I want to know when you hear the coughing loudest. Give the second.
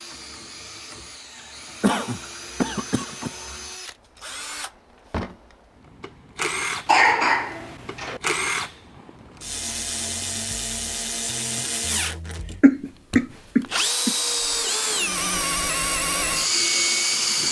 7 s.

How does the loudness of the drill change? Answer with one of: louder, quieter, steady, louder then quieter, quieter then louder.
louder.